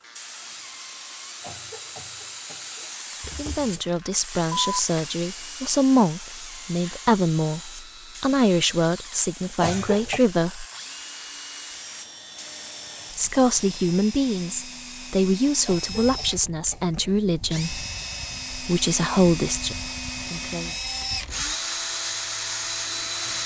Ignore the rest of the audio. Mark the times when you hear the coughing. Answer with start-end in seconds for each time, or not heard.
1.4-2.9, 9.6-10.2, 15.7-17.0.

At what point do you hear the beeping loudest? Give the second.
5 s.